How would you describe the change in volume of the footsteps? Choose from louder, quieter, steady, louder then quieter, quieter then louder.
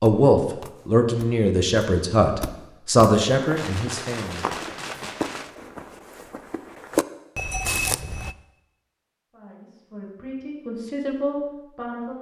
quieter then louder.